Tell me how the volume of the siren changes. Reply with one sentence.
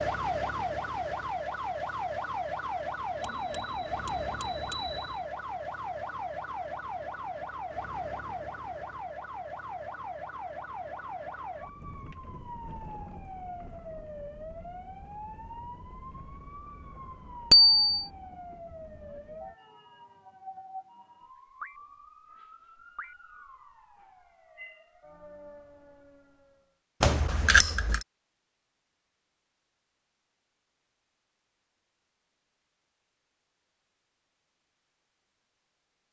The volume of the siren goes down.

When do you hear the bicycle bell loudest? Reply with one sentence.
The volume of the bicycle bell peaks at 18 seconds.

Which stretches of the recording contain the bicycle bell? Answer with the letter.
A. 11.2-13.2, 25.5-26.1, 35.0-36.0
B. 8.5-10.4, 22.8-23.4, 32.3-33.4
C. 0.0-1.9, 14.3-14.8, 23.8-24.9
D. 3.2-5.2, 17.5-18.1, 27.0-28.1
D.